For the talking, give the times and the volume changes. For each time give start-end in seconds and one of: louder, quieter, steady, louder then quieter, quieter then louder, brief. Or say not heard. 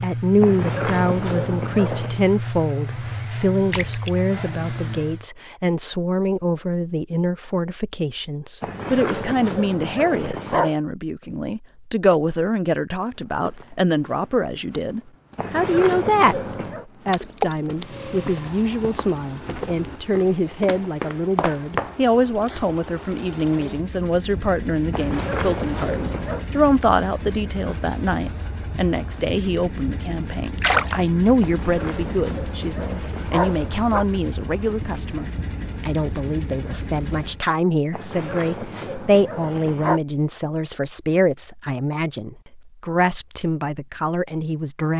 0.0-16.4 steady
17.1-44.9 steady.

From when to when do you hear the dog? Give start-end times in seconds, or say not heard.
0.4-2.2, 8.6-10.8, 15.3-16.9, 24.9-26.4, 31.4-34.0, 37.9-40.0.